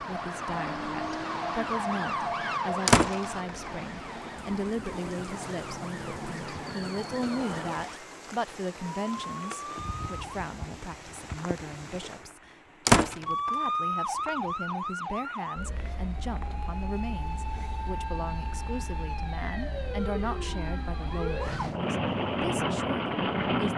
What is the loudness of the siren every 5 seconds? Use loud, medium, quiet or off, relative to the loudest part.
loud, medium, loud, medium, medium.